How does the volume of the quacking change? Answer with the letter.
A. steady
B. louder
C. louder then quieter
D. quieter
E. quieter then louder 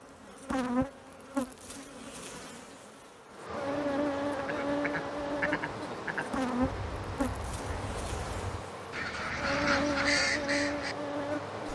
E.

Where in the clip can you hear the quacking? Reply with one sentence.
You can hear the quacking from 4.5 to 10.9 s.